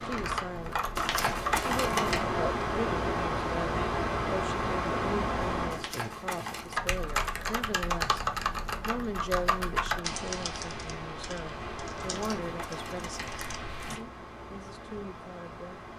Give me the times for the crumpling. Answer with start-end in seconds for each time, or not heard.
0.9-2.2, 5.7-6.8, 12.1-14.1.